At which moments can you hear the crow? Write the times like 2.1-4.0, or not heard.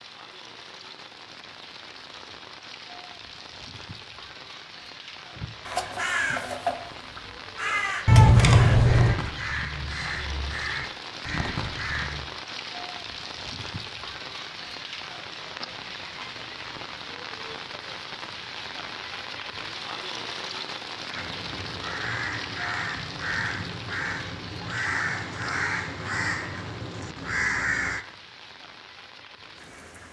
5.3-12.2, 21.1-28.1.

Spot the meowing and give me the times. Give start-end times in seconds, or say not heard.
8.1-9.2.